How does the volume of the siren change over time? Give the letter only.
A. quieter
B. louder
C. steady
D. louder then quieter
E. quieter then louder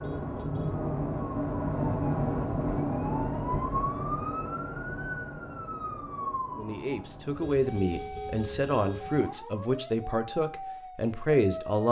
A.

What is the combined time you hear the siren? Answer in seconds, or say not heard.
12 s.